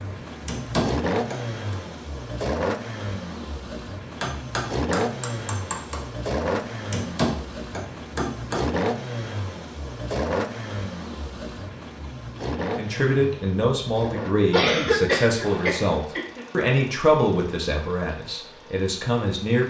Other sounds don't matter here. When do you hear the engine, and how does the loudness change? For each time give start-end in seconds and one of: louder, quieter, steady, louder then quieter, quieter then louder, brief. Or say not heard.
0.0-19.6 quieter.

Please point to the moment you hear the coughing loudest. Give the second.
15 s.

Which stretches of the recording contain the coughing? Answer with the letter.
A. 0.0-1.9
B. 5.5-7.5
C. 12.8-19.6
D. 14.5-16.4
D.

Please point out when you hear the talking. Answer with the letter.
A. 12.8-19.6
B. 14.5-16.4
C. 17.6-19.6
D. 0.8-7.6
A.